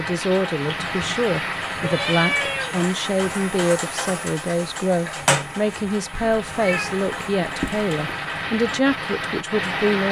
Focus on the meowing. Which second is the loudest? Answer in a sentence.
The volume of the meowing peaks at 2 seconds.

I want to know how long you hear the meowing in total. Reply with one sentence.
You can hear the meowing for 3 seconds altogether.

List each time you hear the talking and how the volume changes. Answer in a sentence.
You can hear the talking from 0.0 to 10.0 s, at a steady volume.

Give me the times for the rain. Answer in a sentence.
You can hear the rain from 0.0 to 10.0 s.